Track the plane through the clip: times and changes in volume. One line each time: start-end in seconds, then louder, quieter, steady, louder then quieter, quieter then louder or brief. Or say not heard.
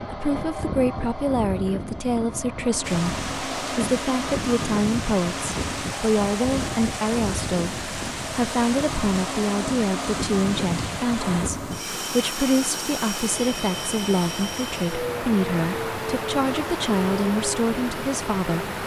0.0-18.8 steady.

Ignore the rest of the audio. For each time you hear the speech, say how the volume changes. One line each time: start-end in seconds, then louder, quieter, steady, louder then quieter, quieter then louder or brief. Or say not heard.
0.0-18.6 steady.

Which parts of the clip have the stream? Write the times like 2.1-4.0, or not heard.
2.8-18.8.